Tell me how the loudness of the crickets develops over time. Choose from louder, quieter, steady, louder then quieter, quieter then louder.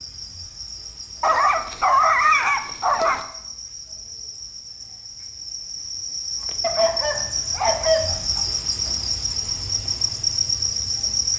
louder.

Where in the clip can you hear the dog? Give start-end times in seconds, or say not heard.
1.2-3.2, 6.6-8.4.